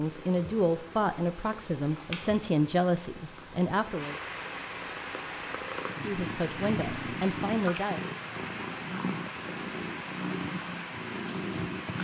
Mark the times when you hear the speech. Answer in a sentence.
You can hear the speech from 0.0 to 4.2 s and from 6.0 to 8.1 s.